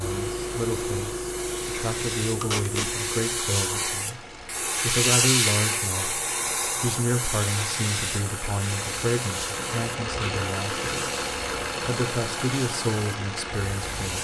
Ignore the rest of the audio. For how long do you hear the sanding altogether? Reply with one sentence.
The sanding can't be heard in this clip.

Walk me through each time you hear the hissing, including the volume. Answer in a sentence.
The hissing can be heard from 0.0 to 14.2 s, getting louder then quieter.